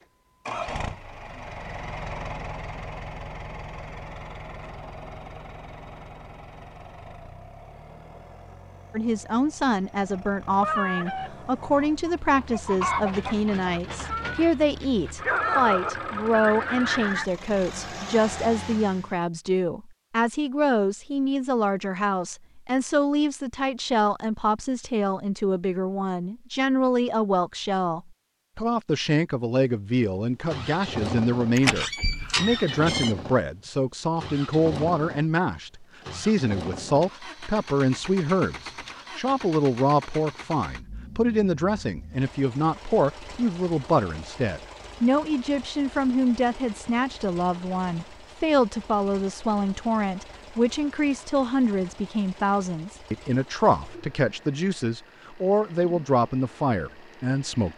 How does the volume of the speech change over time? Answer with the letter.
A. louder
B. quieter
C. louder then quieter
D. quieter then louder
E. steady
E.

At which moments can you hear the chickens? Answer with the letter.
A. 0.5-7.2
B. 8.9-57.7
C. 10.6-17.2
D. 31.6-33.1
C.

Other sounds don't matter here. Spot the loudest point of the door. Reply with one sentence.
The volume of the door peaks at 32 seconds.